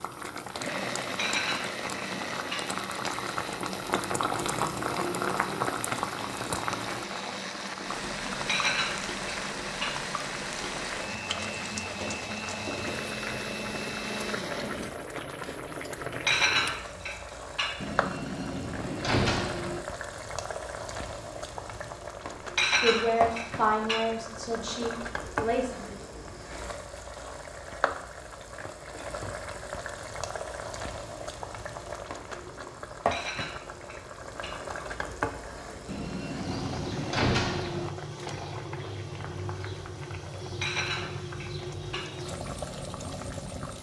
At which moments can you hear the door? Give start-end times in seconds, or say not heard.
17.8-19.8, 35.9-37.9.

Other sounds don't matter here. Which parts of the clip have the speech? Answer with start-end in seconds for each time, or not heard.
22.8-25.9.